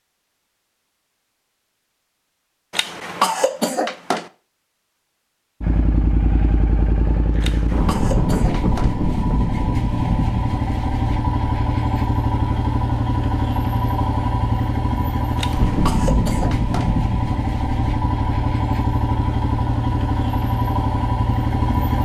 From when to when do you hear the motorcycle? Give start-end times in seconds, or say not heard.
5.6-22.0.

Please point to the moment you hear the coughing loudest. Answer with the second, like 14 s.
3 s.